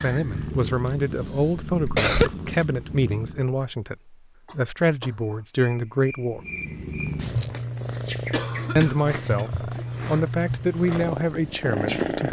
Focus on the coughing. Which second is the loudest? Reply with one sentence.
The volume of the coughing peaks at 2 seconds.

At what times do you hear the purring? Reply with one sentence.
You can hear the purring from 0.0 to 3.5 s and from 6.3 to 12.2 s.